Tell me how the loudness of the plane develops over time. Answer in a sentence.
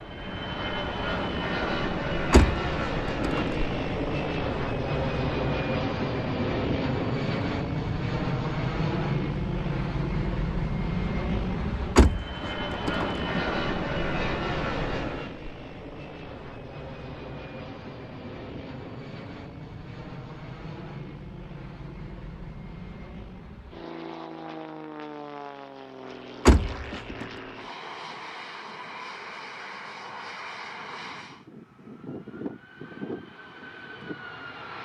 The loudness of the plane goes down.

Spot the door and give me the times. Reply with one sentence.
The door can be heard from 2.3 to 3.8 s, from 11.9 to 13.4 s and from 26.4 to 27.2 s.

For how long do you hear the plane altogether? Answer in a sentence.
The plane can be heard for 35 seconds in total.